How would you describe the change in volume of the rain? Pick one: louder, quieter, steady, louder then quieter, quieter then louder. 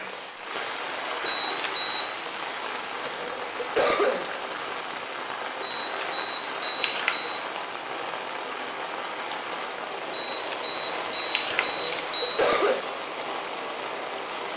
steady.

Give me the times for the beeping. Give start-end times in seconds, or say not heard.
1.2-2.1, 5.6-7.5, 10.1-12.4.